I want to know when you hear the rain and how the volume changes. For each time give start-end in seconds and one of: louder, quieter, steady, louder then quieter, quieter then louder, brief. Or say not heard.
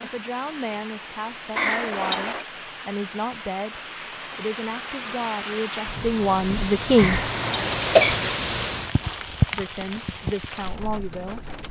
0.0-11.6 louder.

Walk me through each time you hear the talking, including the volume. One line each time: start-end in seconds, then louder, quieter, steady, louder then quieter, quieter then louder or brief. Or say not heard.
0.0-7.2 louder
9.5-11.6 brief.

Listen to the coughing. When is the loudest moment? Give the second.
8 s.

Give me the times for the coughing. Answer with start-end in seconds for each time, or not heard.
1.6-2.5, 7.0-8.2.